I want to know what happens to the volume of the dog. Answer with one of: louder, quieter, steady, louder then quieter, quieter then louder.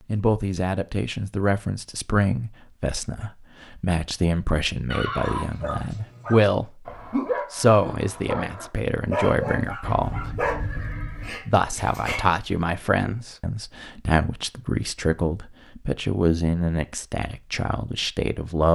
louder then quieter.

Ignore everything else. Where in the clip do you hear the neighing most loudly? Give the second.
5 s.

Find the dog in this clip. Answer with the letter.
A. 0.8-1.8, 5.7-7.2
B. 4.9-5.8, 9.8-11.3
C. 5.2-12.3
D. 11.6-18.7
C.